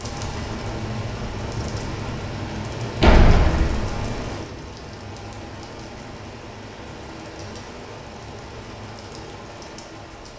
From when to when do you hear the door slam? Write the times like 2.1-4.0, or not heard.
3.0-4.2.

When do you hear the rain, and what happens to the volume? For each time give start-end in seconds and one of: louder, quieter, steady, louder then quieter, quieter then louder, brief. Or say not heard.
0.0-10.3 quieter.